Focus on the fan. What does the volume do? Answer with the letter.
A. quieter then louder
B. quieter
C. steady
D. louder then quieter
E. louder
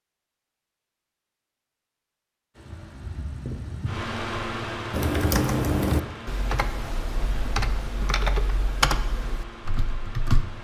B.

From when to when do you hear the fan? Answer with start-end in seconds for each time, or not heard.
2.5-10.5.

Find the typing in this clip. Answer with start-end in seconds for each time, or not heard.
4.9-10.4.